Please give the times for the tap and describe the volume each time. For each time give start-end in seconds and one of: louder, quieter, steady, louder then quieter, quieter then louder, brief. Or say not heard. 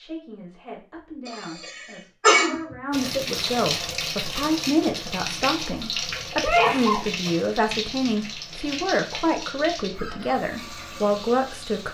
2.9-11.8 quieter.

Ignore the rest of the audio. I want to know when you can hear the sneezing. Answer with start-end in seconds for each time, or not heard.
1.2-2.8, 6.4-7.0.